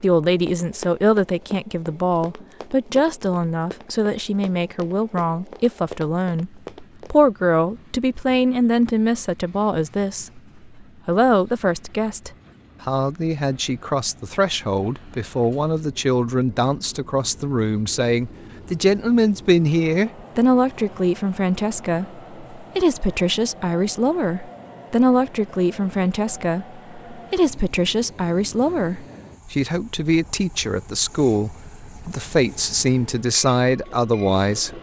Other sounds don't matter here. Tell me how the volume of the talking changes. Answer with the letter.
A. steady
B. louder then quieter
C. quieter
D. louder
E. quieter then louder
A.